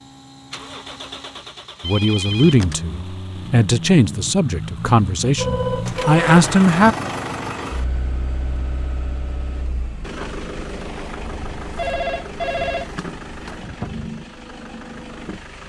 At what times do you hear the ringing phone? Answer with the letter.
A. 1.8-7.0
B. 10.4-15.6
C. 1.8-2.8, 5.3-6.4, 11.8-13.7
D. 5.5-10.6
C.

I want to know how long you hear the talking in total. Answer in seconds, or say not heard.
5 s.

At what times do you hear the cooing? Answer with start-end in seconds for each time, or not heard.
not heard.